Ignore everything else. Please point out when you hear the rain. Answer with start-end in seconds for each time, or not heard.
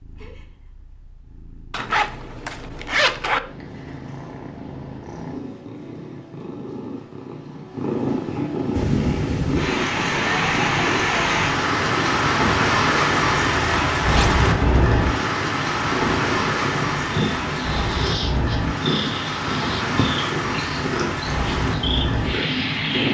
8.7-23.0.